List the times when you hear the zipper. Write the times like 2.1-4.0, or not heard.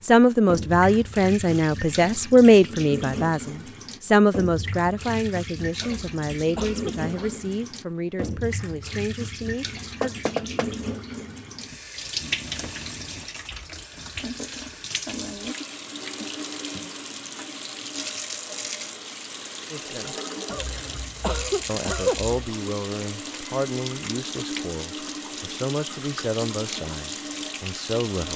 not heard.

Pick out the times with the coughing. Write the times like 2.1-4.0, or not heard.
5.8-7.3, 20.4-22.4.